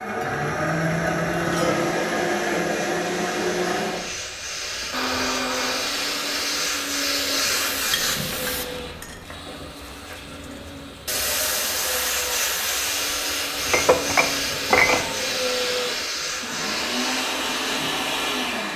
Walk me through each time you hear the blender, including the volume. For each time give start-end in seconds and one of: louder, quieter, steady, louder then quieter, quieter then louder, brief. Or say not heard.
0.0-18.7 quieter then louder.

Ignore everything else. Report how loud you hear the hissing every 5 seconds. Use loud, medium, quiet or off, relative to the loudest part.
medium, loud, loud, loud.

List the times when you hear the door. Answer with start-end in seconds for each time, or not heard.
not heard.